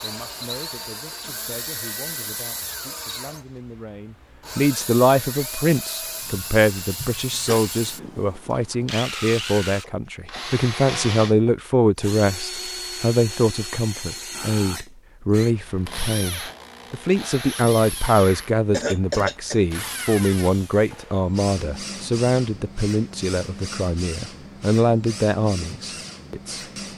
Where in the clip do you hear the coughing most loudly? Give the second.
19 s.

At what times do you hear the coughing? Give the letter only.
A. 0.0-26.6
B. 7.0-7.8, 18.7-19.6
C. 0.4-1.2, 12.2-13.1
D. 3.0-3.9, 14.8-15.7
B.